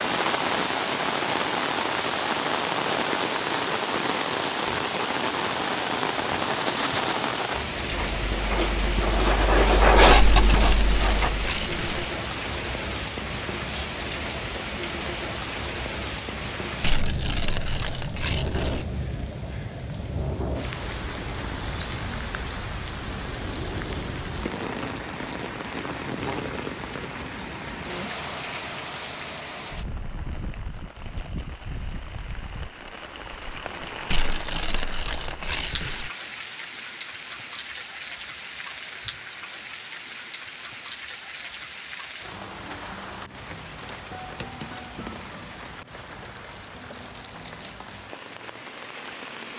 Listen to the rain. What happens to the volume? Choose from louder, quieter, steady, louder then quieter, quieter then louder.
quieter.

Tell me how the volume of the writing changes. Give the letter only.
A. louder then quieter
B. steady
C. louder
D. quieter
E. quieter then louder
C.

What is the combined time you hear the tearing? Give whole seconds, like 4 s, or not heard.
6 s.